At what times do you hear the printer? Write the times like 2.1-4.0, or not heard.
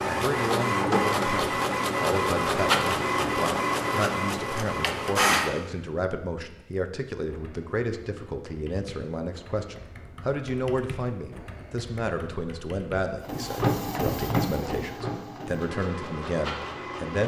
0.0-5.5, 13.2-17.2.